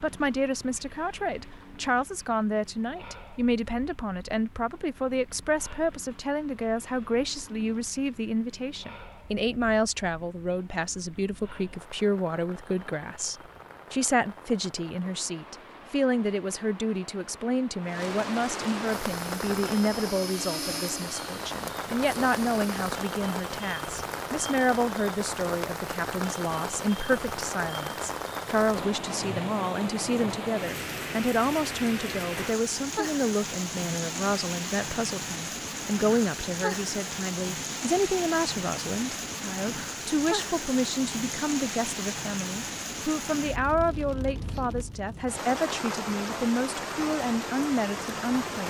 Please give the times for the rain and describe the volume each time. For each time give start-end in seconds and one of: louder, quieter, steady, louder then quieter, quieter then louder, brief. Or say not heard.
0.0-48.6 louder.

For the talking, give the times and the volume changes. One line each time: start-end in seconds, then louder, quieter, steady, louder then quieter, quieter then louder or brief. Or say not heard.
0.0-48.6 steady.